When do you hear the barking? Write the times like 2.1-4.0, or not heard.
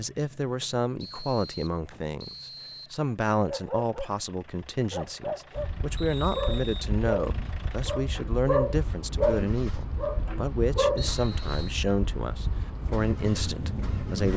3.5-11.1.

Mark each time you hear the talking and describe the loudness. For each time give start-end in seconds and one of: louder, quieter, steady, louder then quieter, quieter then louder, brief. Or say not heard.
0.0-14.3 steady.